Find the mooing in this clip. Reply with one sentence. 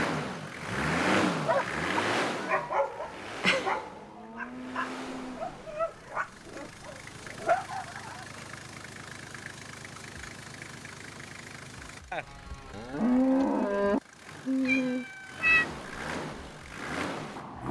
The mooing can be heard from 3.8 to 5.7 s and from 12.1 to 14.0 s.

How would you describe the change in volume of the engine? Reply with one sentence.
The volume of the engine goes down, then up.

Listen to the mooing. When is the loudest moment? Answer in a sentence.
The loudest moment of the mooing is at 13 seconds.